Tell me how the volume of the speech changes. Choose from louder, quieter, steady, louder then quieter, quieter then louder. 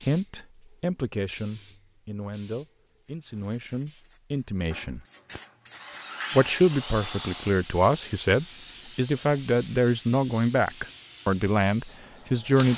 louder.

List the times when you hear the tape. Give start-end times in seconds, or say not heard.
not heard.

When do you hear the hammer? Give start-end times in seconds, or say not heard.
not heard.